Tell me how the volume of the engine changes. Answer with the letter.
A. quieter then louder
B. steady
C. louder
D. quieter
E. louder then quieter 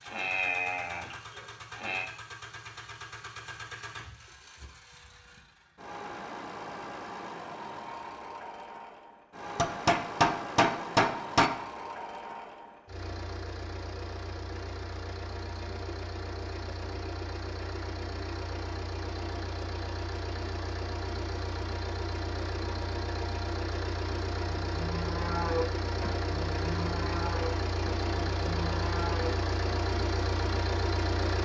C.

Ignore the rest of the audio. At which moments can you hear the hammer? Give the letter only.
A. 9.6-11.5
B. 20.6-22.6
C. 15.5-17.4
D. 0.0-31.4
A.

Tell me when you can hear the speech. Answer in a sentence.
The speech can't be heard in this clip.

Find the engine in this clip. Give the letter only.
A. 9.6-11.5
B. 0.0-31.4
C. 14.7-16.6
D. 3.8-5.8
B.